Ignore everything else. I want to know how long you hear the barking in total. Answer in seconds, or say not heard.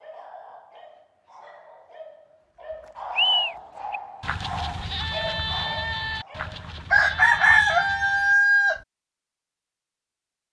7 s.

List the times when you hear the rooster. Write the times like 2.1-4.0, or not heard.
6.9-8.8.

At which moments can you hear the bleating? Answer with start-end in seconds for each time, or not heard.
3.1-8.3.